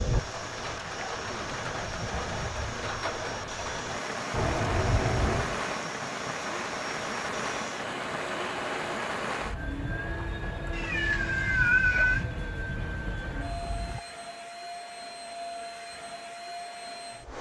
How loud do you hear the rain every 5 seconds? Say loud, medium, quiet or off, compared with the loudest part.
loud, loud, medium, off.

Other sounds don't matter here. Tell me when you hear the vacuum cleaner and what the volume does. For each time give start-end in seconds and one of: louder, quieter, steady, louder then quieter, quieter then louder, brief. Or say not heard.
0.0-17.3 steady.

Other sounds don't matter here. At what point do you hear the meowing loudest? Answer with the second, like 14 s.
12 s.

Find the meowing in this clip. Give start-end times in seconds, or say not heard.
4.3-5.6, 10.7-12.2.